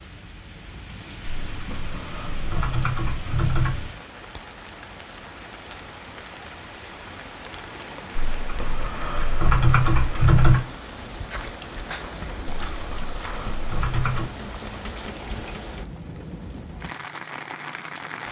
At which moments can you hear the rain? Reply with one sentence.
You can hear the rain from 0.0 to 18.2 s.